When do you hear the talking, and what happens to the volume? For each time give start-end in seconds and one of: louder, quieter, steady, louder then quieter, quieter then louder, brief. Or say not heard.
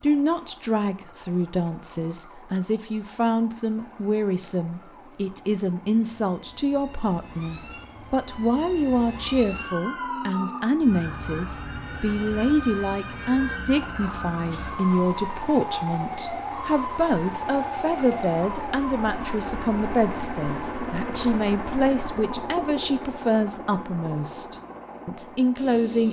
0.0-26.0 steady.